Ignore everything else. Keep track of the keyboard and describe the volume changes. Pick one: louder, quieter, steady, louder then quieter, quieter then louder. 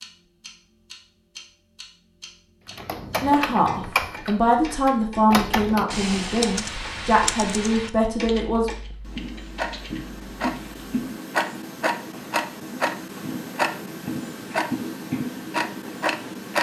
quieter.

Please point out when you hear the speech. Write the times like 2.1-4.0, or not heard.
3.2-8.7.